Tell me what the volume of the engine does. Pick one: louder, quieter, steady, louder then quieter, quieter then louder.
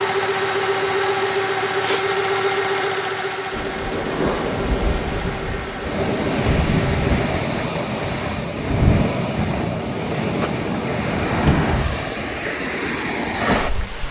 quieter.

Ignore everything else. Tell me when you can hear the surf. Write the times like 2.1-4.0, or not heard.
3.5-14.0.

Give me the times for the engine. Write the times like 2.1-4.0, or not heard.
0.0-7.2.